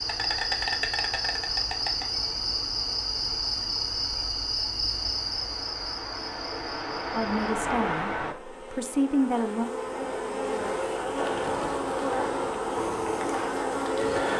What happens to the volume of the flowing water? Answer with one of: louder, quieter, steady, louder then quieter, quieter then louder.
louder.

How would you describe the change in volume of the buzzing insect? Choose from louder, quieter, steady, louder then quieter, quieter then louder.
quieter then louder.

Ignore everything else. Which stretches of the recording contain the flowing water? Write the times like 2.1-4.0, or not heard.
0.0-8.3.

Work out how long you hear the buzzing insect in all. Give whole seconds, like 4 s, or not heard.
14 s.